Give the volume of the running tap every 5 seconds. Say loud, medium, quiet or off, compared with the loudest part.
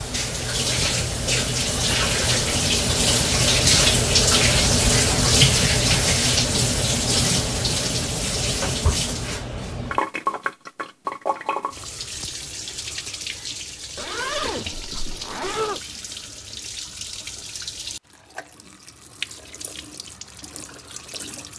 loud, loud, medium, quiet, quiet.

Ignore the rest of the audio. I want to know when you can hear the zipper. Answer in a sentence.
You can hear the zipper from 13.9 to 15.8 s.